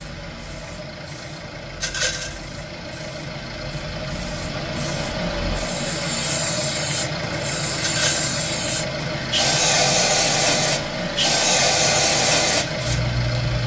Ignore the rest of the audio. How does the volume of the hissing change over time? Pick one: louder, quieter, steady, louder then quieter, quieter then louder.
louder.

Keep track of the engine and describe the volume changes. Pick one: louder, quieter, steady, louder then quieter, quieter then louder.
louder.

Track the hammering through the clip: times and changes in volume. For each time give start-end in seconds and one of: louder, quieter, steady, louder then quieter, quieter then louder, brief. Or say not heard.
not heard.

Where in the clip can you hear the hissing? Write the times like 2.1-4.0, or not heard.
0.2-13.6.